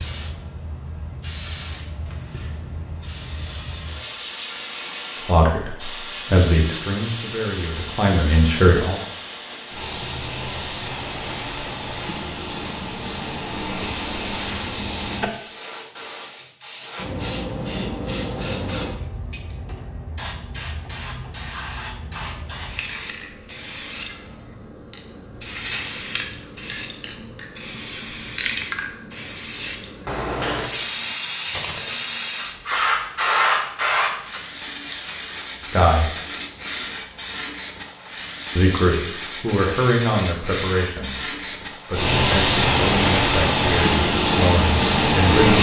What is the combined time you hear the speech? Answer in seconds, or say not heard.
11 s.